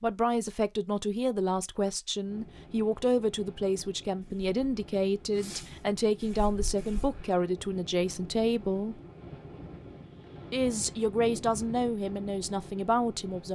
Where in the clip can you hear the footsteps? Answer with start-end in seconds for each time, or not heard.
not heard.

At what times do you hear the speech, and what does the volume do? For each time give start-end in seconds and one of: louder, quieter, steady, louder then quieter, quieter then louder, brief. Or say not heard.
0.0-9.0 steady
10.5-13.4 brief.